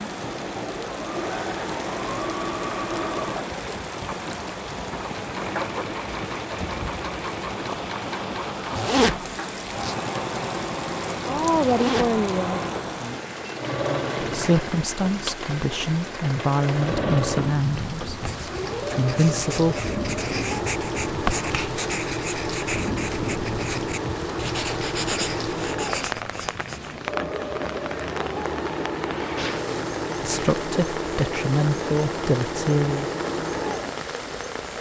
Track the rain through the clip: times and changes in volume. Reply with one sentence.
You can hear the rain from 0.0 to 34.7 s, at a steady volume.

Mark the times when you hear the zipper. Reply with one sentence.
The zipper can be heard from 8.7 to 9.9 s, from 11.6 to 12.2 s and from 29.4 to 30.6 s.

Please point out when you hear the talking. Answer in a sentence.
The talking can be heard from 11.2 to 12.6 s, from 14.2 to 18.2 s, from 18.9 to 19.9 s and from 30.2 to 33.1 s.